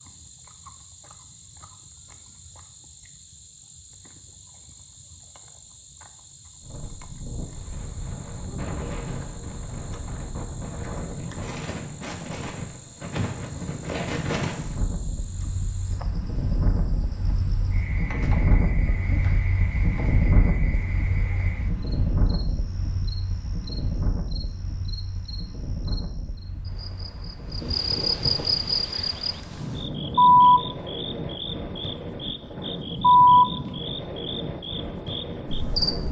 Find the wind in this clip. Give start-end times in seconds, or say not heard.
6.6-36.0.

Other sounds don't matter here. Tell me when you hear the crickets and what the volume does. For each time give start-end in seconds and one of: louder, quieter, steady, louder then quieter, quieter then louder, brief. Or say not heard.
0.0-36.0 louder.